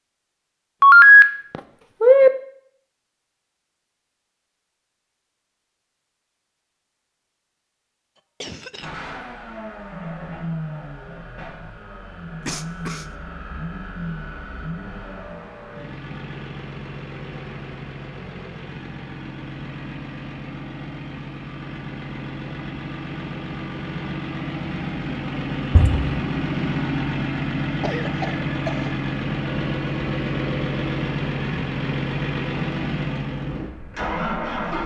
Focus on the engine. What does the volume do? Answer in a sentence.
The volume of the engine goes up.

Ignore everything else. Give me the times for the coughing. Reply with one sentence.
You can hear the coughing from 8.2 to 8.9 s, from 12.4 to 13.1 s and from 27.8 to 28.9 s.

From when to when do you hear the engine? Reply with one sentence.
You can hear the engine from 8.8 to 34.8 s.